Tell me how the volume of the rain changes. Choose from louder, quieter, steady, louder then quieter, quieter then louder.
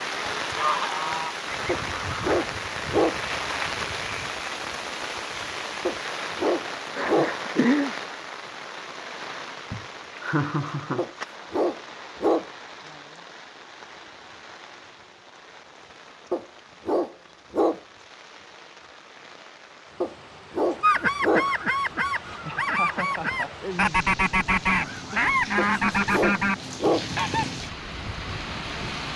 quieter then louder.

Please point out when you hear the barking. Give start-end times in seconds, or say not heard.
1.6-3.2, 5.8-7.3, 10.9-12.5, 16.3-17.8, 20.0-21.5, 25.6-27.1.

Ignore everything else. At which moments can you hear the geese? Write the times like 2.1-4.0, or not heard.
0.0-2.4, 20.8-27.5.